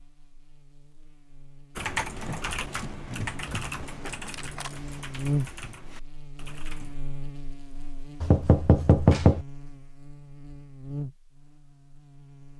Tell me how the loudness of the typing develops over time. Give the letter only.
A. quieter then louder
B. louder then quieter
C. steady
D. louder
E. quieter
E.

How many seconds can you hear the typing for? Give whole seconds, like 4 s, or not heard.
5 s.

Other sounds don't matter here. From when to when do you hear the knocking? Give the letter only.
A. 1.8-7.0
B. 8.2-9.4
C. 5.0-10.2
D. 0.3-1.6
B.